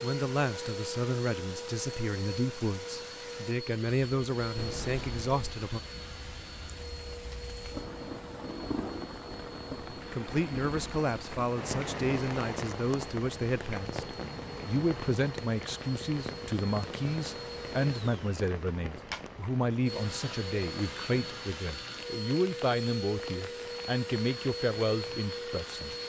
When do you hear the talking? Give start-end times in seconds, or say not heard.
0.0-5.8, 9.9-25.9.